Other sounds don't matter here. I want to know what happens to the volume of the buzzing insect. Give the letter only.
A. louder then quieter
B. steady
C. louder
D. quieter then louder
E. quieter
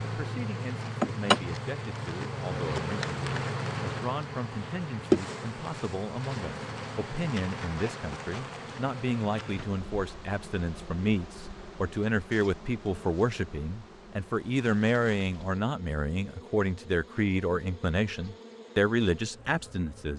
E.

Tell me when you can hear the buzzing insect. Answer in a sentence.
You can hear the buzzing insect from 0.0 to 20.1 s.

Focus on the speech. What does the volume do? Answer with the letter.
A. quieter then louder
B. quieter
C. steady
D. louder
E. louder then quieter
D.